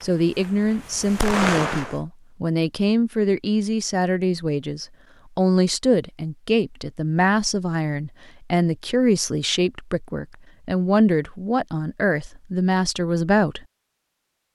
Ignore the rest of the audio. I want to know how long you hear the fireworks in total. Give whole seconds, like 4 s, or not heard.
2 s.